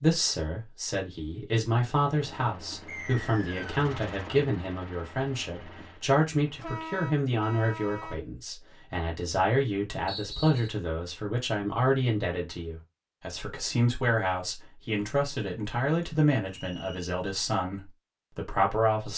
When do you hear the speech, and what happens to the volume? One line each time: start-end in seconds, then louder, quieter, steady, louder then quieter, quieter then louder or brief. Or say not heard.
0.0-19.1 steady.